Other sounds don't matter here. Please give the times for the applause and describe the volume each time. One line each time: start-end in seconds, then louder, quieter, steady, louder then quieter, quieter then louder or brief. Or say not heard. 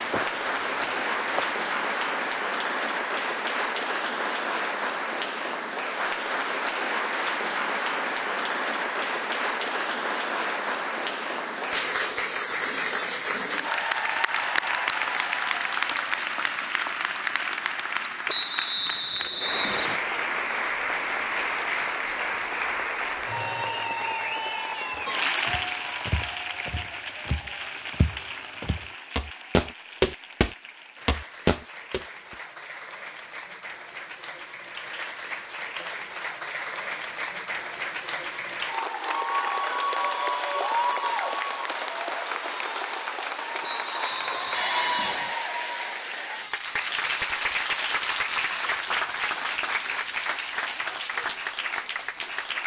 0.0-52.6 steady.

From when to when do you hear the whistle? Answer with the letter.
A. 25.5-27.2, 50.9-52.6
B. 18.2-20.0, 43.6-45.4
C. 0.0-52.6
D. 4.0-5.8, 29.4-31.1
B.